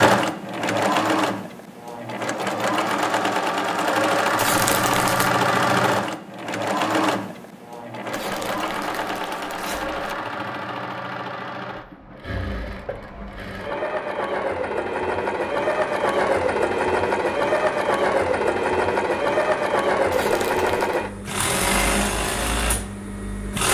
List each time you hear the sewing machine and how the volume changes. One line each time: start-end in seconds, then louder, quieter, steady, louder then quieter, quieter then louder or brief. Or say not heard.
0.0-23.6 quieter then louder.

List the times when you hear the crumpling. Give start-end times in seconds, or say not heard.
4.3-5.3, 8.1-10.2, 20.1-21.0.